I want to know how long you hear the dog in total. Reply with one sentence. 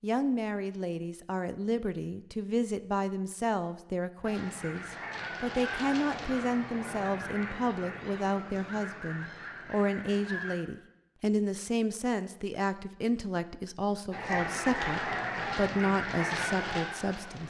You can't hear the dog here.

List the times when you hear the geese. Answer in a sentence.
The geese can be heard from 4.2 to 10.6 s and from 14.1 to 17.4 s.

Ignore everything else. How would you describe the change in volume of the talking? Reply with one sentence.
The loudness of the talking stays about the same.